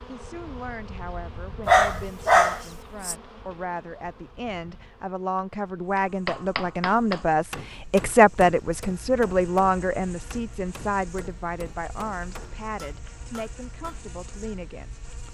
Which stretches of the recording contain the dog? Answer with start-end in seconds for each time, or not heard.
1.6-3.1.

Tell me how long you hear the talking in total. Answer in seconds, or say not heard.
15 s.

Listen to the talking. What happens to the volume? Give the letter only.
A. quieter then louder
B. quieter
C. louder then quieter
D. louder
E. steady
C.